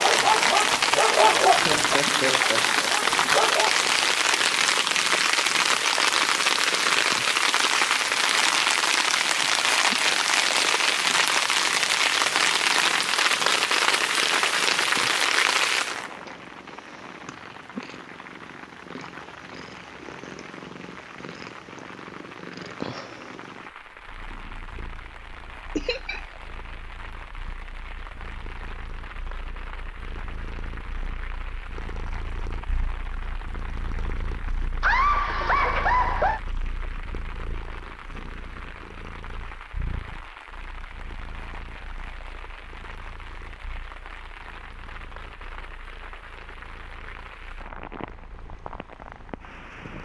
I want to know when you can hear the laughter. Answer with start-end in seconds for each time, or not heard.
1.2-2.9, 25.8-26.2, 34.8-36.4.